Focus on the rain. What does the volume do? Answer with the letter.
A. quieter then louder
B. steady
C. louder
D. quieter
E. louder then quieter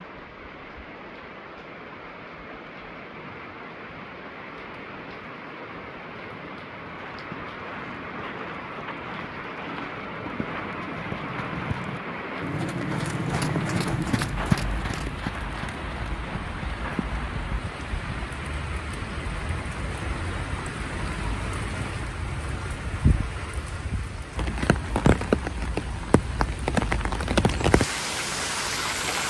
C.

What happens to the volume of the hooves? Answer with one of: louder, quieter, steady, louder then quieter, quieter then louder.
louder then quieter.